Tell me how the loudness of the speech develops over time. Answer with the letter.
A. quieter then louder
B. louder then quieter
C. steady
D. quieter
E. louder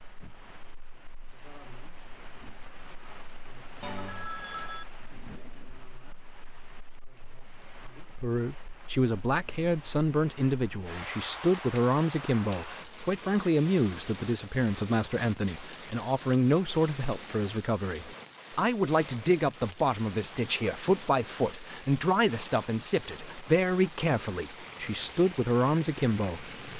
C.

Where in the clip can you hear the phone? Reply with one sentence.
You can hear the phone from 3.8 to 4.8 s.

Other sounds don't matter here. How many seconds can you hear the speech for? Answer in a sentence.
The speech can be heard for 18 seconds in total.